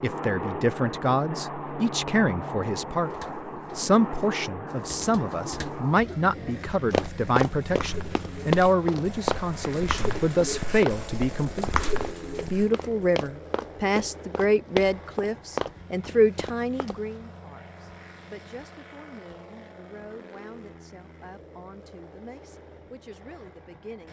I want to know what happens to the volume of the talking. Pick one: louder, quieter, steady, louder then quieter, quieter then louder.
quieter.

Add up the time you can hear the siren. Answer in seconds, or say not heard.
not heard.